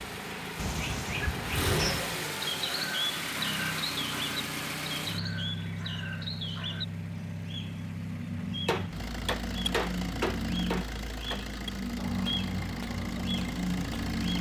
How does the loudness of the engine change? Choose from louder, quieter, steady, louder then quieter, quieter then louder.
quieter.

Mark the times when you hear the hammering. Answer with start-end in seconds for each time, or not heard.
8.7-14.2.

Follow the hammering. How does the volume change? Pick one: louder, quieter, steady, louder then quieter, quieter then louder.
quieter.